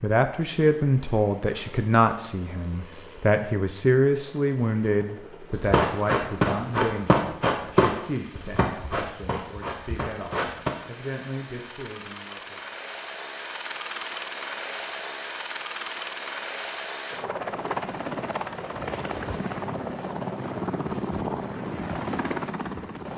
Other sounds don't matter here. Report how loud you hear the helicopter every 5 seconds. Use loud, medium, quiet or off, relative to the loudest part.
quiet, quiet, medium, loud, loud.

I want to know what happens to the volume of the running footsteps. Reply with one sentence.
The volume of the running footsteps goes down.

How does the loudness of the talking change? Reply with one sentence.
The volume of the talking goes down.